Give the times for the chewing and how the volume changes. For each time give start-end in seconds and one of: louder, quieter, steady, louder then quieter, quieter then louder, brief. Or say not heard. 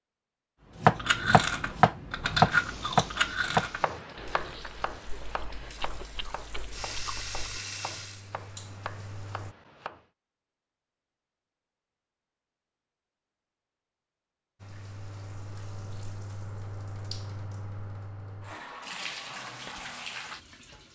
0.9-7.6 quieter.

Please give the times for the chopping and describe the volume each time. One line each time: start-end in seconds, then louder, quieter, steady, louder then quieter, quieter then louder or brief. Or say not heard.
0.8-10.1 quieter.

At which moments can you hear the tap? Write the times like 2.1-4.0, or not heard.
2.5-9.6, 14.6-20.9.